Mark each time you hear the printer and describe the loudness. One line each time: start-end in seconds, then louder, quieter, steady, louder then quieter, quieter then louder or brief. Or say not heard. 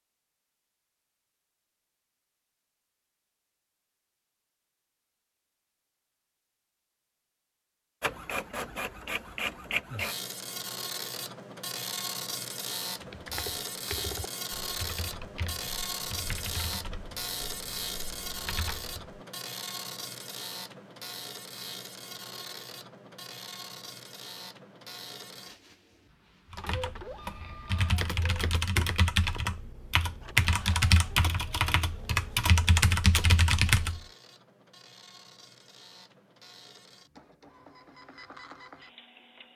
8.0-39.5 quieter.